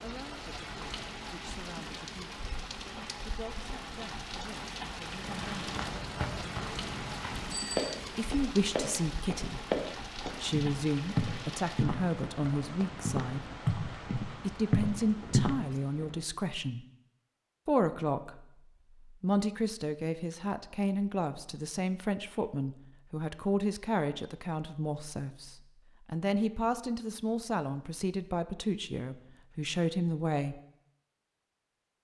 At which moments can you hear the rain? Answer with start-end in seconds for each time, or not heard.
0.0-16.3.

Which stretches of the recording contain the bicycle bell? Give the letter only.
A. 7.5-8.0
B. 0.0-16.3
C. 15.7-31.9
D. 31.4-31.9
A.